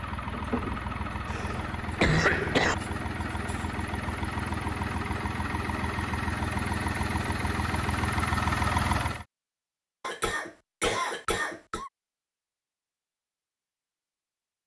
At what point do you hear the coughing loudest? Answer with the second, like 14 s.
2 s.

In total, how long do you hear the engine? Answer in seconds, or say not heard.
9 s.